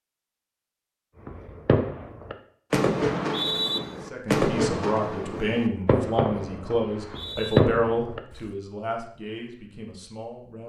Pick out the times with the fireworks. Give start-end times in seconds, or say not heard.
1.2-8.2.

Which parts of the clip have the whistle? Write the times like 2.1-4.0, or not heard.
3.0-3.8, 6.8-7.6.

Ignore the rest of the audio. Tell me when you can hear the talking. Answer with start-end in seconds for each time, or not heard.
4.0-10.6.